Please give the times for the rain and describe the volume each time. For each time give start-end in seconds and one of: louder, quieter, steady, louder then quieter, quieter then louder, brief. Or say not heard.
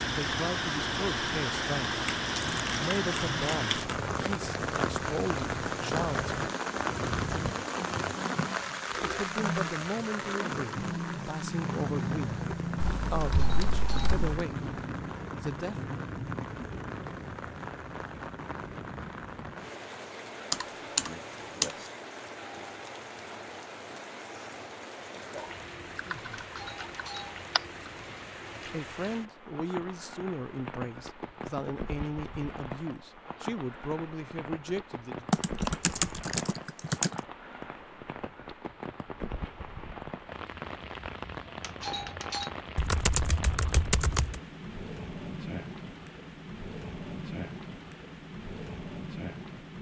0.0-49.7 quieter.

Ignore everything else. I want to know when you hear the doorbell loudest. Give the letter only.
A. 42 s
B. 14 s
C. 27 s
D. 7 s
A.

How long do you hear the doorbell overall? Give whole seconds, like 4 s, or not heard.
3 s.